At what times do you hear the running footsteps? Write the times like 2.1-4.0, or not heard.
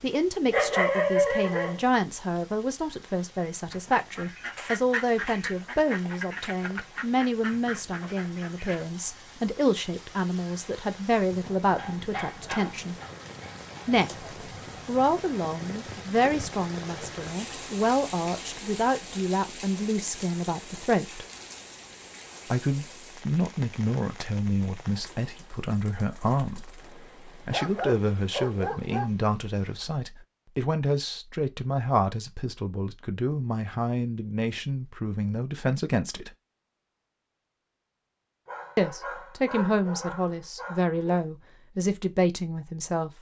not heard.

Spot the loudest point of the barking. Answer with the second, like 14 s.
1 s.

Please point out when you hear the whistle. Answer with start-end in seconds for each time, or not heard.
not heard.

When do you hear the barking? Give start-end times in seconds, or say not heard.
0.1-1.9, 11.8-14.2, 27.5-29.1, 38.5-41.2.